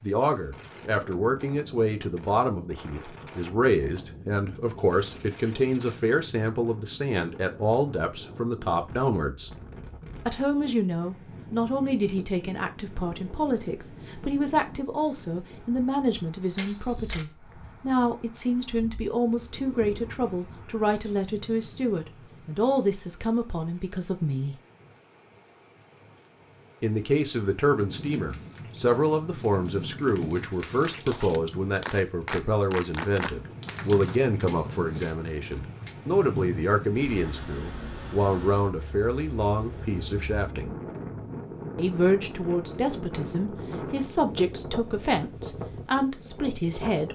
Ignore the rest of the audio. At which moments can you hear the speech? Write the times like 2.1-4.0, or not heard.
0.0-9.5, 10.2-24.6, 26.8-40.8, 41.8-47.1.